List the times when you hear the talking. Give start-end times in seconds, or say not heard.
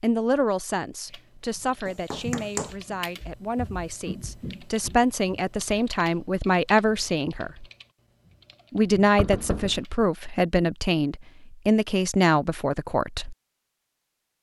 0.0-7.7, 8.7-13.3.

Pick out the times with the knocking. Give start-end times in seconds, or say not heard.
1.9-2.8, 9.2-9.8.